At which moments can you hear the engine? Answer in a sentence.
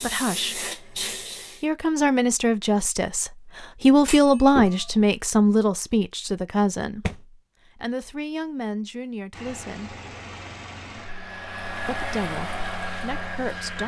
The engine can be heard from 9.3 to 13.8 s.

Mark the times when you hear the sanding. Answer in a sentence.
The sanding can't be heard in this clip.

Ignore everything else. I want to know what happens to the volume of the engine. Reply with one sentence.
The loudness of the engine goes up.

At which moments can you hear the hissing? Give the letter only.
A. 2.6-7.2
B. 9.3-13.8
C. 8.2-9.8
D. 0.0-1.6
D.